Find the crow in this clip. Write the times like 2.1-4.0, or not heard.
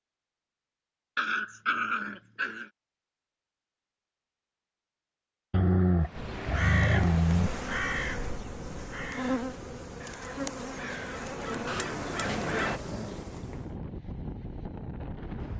6.2-12.8.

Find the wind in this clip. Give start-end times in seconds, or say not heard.
6.0-15.5.